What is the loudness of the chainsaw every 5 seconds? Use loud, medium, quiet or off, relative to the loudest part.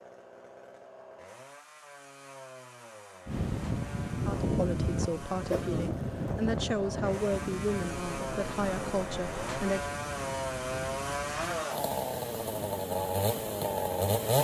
quiet, medium, loud.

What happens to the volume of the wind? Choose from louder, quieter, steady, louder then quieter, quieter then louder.
quieter.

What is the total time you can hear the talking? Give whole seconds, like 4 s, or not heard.
6 s.